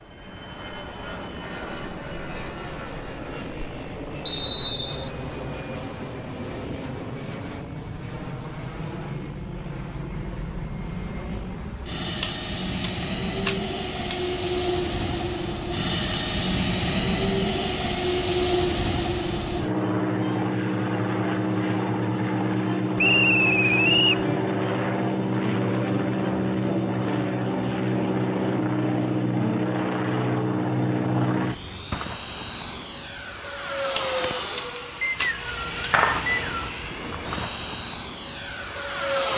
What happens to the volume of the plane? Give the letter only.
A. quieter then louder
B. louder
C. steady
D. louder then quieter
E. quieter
B.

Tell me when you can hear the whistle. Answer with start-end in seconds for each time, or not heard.
4.2-5.1, 22.9-24.2, 35.0-36.7.